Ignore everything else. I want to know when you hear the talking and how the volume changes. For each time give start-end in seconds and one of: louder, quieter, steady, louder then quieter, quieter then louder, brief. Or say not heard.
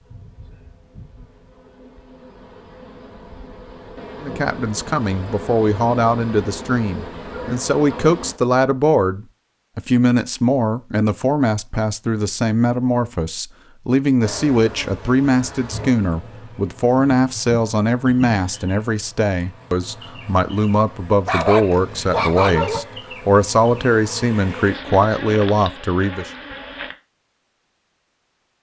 4.2-26.3 steady.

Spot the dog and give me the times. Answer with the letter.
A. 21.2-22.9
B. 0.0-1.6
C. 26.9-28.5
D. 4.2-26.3
A.